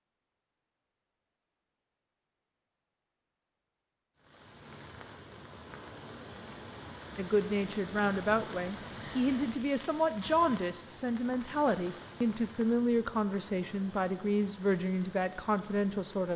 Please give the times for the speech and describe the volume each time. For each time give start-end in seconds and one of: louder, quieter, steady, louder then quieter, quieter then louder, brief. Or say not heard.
7.2-16.3 steady.